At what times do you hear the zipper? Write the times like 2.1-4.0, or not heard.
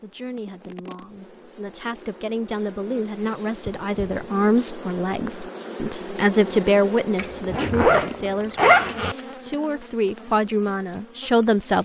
3.9-4.3, 7.2-9.2.